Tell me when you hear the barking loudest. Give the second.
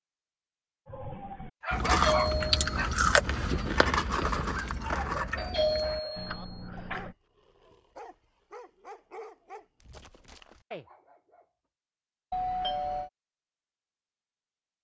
2 s.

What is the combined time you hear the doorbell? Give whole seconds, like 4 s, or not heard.
3 s.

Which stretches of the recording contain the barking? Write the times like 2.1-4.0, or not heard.
0.8-11.4.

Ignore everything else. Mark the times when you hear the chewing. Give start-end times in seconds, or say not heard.
1.7-7.2.